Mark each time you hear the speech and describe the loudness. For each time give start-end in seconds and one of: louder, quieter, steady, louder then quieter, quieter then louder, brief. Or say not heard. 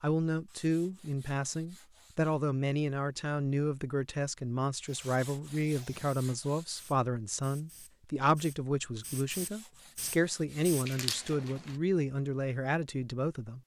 0.0-13.6 steady.